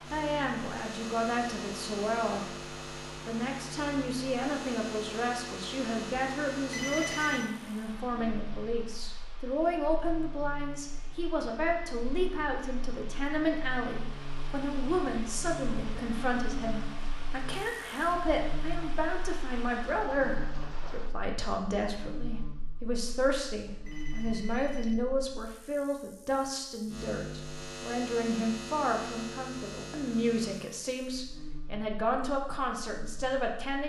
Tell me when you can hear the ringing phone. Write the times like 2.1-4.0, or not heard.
6.7-7.5, 23.9-25.0.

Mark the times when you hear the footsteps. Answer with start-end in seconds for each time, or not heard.
not heard.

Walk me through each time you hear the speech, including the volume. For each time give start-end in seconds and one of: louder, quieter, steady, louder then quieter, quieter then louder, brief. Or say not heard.
0.1-33.8 steady.